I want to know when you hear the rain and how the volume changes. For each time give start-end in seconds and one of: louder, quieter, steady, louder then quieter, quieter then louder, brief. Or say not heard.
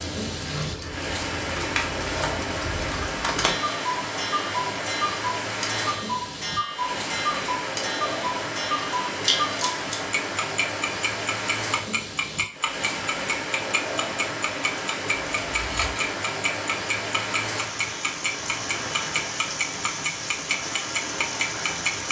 0.0-22.0 steady.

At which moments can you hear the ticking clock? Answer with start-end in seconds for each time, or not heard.
0.0-22.0.